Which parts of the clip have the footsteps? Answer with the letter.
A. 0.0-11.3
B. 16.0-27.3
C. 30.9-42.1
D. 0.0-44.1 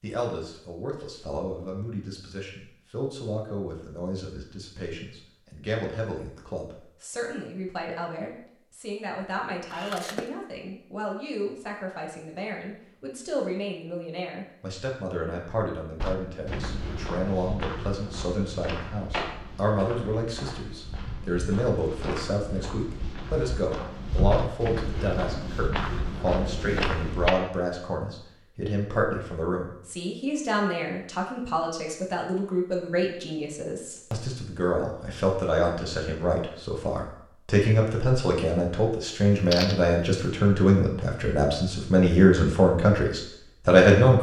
B.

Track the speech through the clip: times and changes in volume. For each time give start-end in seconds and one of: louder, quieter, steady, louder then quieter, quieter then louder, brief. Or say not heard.
0.0-44.1 louder.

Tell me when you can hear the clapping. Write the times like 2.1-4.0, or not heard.
not heard.